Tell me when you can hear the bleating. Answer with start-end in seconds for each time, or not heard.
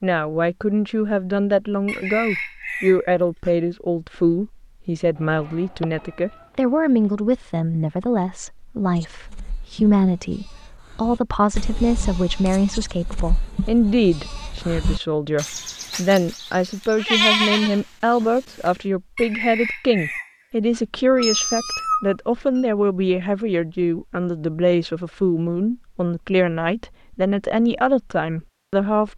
8.9-18.7.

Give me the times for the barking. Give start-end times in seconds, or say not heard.
not heard.